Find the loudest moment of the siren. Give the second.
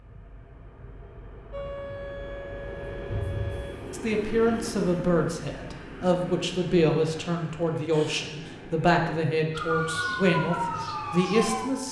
10 s.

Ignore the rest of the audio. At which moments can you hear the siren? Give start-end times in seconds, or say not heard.
1.5-3.8, 9.5-11.8.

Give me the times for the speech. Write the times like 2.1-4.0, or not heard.
3.9-11.8.